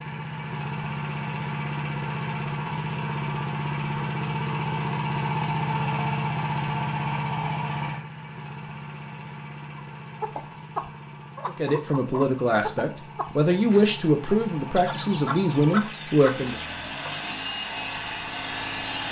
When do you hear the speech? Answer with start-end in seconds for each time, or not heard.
11.4-16.6.